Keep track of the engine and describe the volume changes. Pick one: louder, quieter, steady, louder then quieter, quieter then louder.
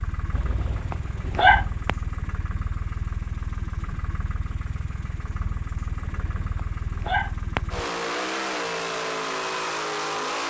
louder.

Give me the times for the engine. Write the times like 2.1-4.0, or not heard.
0.0-10.4.